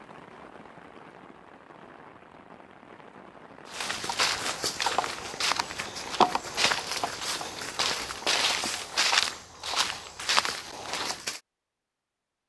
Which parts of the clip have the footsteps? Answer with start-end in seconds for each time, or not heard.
3.6-11.4.